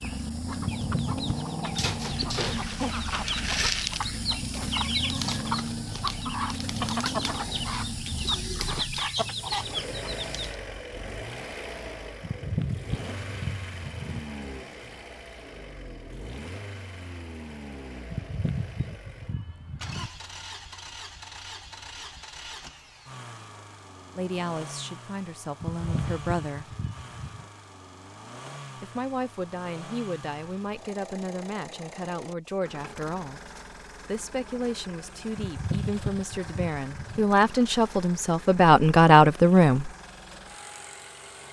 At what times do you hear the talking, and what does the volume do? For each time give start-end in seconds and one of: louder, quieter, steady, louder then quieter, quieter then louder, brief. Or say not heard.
24.1-26.6 brief
28.8-39.9 louder.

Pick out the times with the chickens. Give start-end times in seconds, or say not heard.
0.0-10.6.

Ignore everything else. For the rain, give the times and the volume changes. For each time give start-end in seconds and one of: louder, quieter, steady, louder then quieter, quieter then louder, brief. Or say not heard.
not heard.